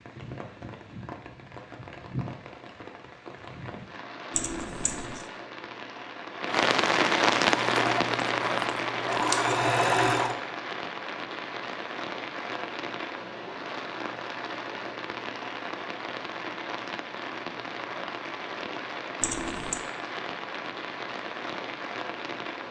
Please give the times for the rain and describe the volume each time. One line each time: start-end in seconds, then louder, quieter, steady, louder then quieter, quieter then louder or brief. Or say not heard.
0.0-22.6 louder then quieter.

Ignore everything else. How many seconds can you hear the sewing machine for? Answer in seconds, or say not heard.
3 s.